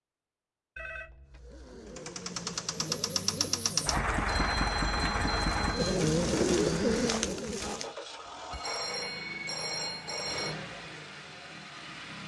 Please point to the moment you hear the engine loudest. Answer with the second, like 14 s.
4 s.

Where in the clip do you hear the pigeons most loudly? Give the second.
7 s.